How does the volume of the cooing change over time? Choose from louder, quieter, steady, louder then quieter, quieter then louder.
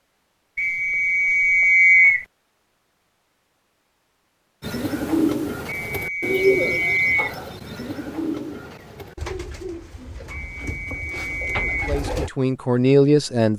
quieter.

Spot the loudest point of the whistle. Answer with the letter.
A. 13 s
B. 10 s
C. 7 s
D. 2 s
D.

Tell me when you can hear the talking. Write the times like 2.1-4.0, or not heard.
11.6-13.5.